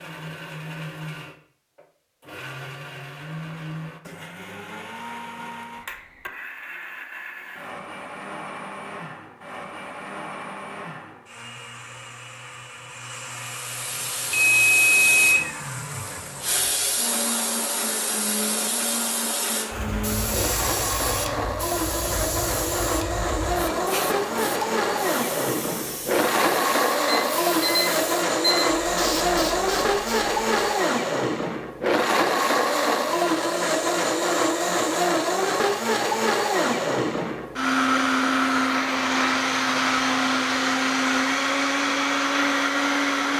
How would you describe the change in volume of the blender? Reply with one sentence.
The volume of the blender goes up.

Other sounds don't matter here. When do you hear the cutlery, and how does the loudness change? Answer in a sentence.
The cutlery can't be heard in this clip.